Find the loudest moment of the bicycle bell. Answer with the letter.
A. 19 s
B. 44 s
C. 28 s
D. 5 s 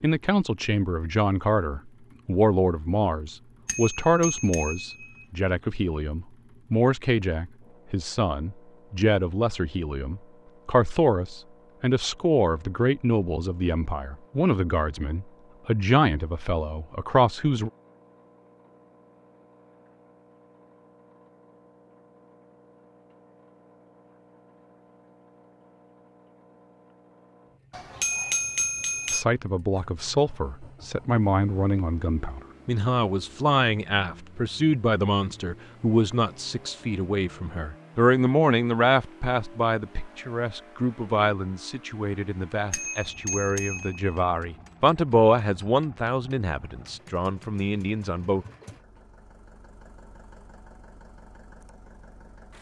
C.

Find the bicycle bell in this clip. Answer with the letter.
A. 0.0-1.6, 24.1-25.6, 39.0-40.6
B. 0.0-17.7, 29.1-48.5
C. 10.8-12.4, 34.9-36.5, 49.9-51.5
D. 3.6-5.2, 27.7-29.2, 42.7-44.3
D.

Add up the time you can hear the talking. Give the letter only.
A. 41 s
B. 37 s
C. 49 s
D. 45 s
B.